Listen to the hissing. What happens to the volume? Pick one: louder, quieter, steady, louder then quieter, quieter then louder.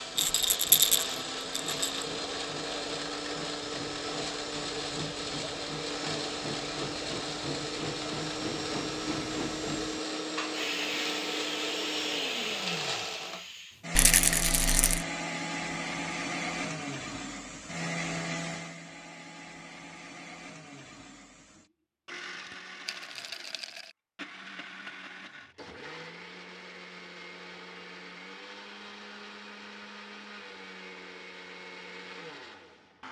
louder.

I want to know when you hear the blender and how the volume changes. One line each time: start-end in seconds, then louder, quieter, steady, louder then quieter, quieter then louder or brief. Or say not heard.
0.0-33.0 quieter.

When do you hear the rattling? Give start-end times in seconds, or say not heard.
0.1-2.0, 13.9-15.1, 22.9-23.9.